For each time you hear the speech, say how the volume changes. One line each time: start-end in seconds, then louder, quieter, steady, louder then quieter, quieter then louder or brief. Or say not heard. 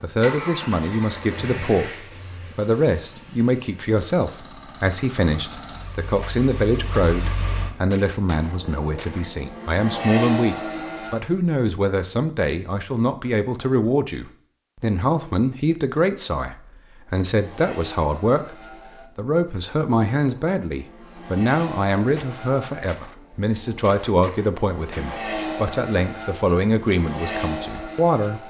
0.0-28.4 steady.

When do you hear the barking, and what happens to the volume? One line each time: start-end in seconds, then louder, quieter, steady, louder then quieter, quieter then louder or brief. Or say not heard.
not heard.